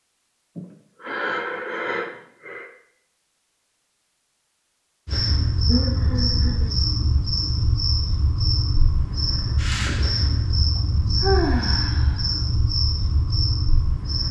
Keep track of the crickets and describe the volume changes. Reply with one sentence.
The loudness of the crickets stays about the same.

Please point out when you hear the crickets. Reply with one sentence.
The crickets can be heard from 5.0 to 14.2 s.